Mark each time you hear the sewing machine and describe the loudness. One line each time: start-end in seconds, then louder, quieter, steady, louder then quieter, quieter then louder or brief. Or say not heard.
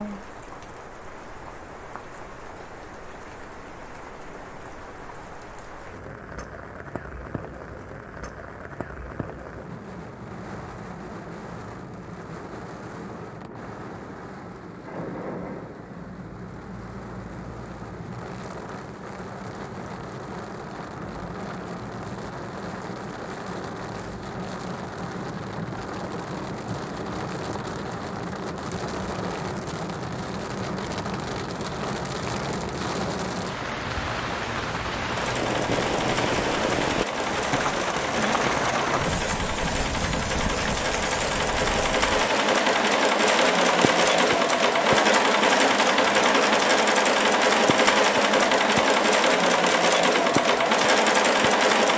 35.0-51.9 louder.